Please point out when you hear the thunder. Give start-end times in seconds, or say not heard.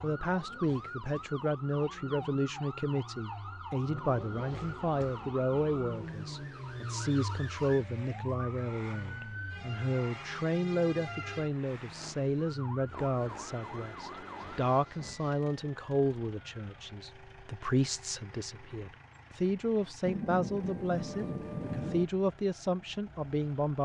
20.1-22.1.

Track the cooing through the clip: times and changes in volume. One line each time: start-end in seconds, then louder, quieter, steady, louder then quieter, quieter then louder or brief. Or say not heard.
not heard.